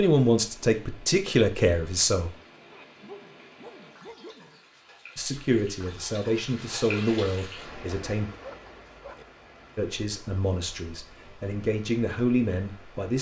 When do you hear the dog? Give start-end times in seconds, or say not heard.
2.7-4.6, 7.8-9.2.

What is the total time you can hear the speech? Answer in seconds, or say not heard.
9 s.